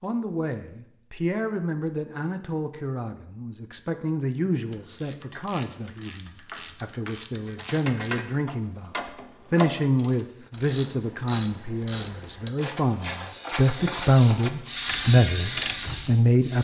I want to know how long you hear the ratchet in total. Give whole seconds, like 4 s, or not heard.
12 s.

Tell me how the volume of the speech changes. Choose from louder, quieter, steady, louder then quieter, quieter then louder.
louder.